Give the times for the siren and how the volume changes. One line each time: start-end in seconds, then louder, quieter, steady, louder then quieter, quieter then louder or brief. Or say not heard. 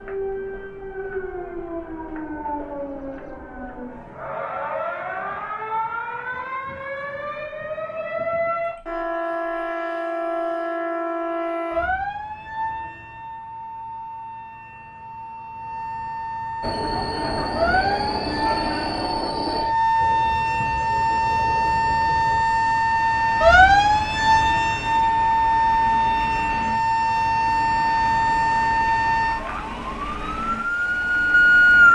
0.0-31.8 louder.